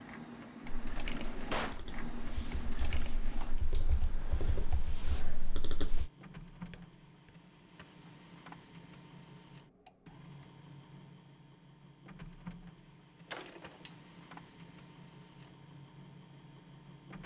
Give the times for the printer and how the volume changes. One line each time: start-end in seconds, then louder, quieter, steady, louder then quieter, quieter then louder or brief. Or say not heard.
0.0-17.2 quieter.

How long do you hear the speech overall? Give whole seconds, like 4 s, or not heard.
not heard.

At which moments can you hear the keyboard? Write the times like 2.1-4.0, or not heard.
0.7-6.1.